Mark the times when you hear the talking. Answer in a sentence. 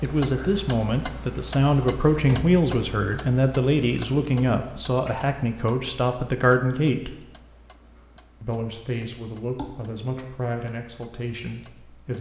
You can hear the talking from 0.0 to 7.2 s and from 8.4 to 12.1 s.